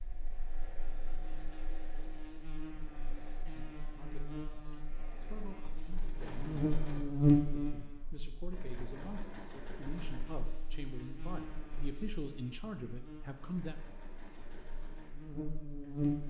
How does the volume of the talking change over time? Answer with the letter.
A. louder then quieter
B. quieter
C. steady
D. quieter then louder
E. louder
E.